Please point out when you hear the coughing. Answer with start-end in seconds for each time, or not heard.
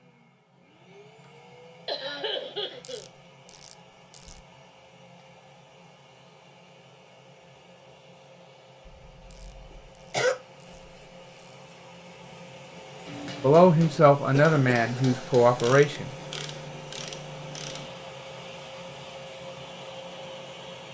1.9-3.0, 8.8-10.3, 14.3-15.3.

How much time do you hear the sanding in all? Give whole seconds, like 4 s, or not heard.
not heard.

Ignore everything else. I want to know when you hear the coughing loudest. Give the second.
10 s.